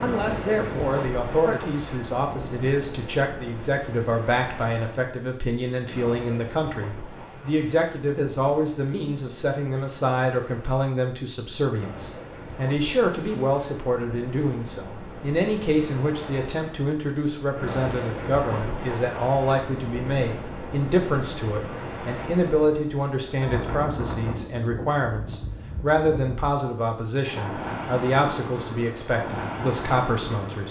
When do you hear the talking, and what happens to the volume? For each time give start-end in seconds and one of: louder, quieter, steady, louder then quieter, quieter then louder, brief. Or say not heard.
0.0-30.6 steady.